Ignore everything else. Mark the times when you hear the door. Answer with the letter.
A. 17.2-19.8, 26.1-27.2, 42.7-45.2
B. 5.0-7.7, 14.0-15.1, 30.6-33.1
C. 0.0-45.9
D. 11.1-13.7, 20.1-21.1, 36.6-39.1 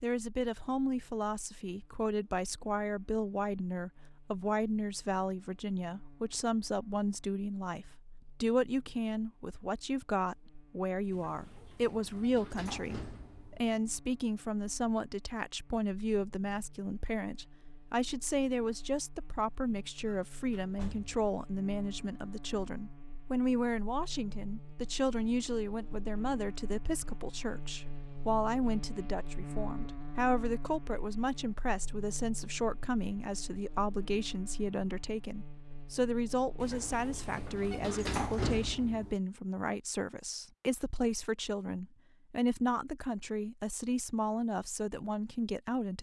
D.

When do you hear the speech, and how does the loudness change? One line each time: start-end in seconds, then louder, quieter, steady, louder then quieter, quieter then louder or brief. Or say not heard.
0.0-45.9 steady.